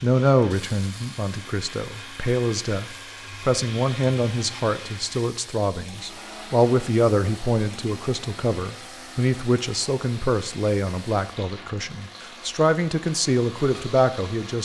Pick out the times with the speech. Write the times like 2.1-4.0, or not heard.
0.0-14.6.